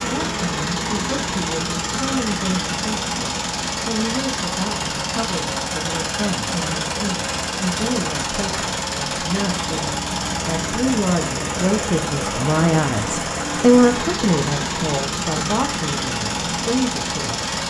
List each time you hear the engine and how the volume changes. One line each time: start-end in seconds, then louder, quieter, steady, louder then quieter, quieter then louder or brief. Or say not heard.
0.0-17.6 steady.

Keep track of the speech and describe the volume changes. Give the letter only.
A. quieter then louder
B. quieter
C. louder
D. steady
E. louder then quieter
E.